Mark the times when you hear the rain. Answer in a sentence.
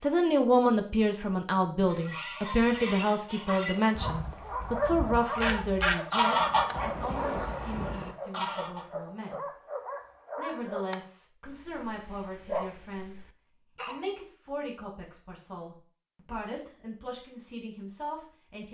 The rain can't be heard in this clip.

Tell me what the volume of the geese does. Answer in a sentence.
The volume of the geese goes up, then down.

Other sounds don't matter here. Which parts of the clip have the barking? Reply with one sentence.
You can hear the barking from 3.7 to 14.1 s.